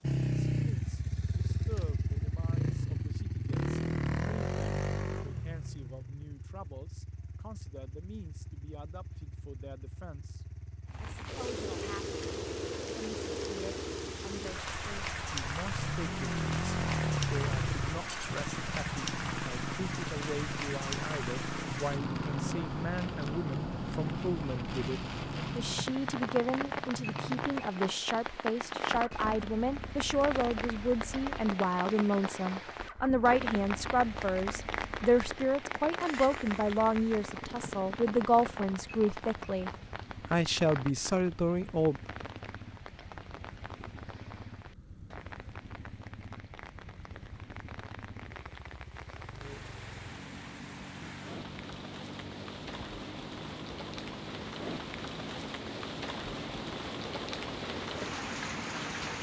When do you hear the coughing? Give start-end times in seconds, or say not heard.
not heard.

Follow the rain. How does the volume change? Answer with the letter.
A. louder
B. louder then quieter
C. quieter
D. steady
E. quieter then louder
E.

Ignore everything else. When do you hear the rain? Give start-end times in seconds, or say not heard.
10.9-59.1.